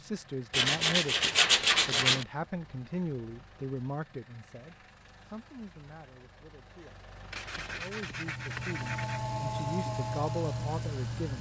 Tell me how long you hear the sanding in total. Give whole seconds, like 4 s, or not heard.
4 s.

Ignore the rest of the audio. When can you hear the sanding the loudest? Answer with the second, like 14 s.
2 s.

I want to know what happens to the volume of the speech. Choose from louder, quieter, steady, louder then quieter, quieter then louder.
quieter then louder.